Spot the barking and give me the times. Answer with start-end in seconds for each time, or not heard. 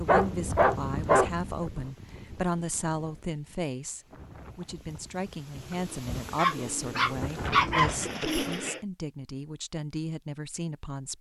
0.1-1.6, 6.3-7.9.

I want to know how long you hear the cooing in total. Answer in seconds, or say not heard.
3 s.